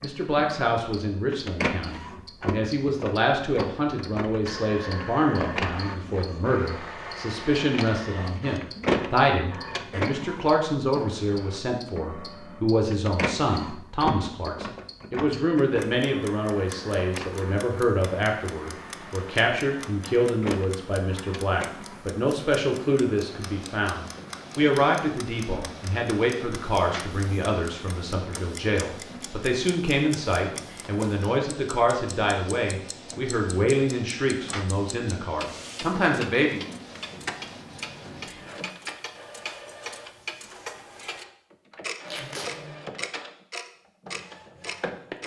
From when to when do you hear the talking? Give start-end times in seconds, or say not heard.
0.0-36.6.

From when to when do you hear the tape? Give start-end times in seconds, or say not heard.
42.0-42.5.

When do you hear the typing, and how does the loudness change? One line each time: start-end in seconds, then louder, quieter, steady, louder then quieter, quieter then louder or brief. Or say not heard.
not heard.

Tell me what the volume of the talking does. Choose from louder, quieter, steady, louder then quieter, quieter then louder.
steady.